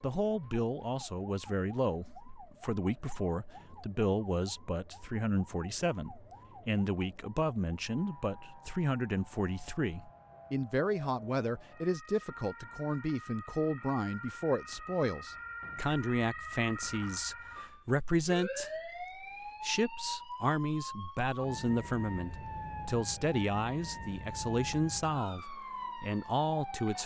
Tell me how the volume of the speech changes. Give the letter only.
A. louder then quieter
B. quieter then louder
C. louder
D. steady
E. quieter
D.